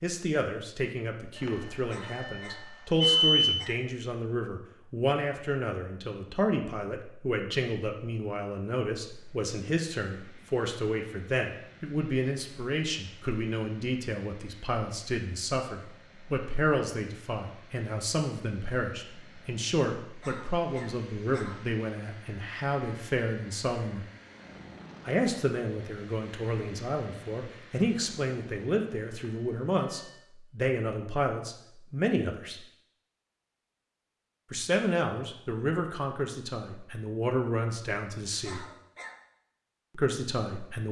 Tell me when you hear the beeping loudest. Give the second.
3 s.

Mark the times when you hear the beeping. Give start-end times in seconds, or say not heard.
1.4-3.6, 29.1-30.2.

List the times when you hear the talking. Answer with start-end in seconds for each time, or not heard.
0.0-24.1, 25.1-32.6, 34.5-38.6, 40.0-40.8.